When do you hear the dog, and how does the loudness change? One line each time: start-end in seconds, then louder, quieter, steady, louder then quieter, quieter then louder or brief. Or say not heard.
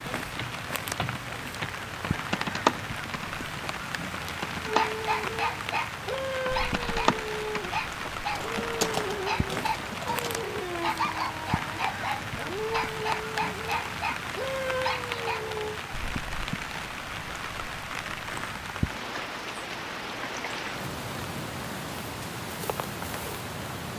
4.7-15.8 steady.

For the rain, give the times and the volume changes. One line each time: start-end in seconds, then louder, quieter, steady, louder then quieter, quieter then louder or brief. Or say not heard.
0.0-23.9 steady.